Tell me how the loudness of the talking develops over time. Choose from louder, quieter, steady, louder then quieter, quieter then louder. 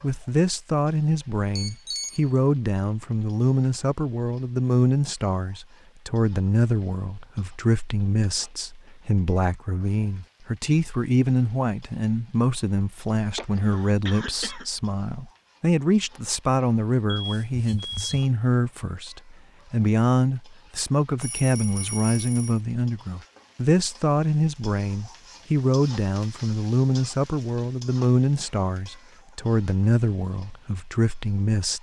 steady.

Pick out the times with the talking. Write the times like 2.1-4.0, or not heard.
0.0-31.7.